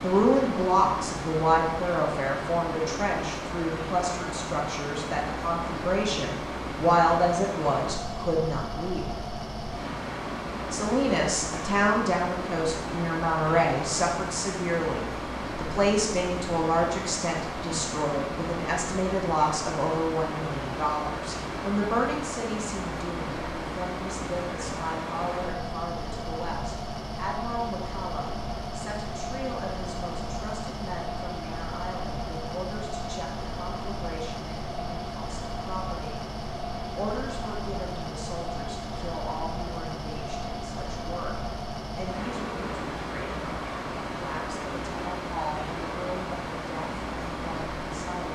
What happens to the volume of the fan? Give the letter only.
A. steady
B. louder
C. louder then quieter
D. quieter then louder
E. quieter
A.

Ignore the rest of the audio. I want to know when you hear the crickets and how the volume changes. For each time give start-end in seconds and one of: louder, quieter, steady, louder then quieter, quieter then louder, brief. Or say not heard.
not heard.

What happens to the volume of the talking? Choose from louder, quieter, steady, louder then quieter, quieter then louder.
quieter.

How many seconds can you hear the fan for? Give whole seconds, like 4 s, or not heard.
48 s.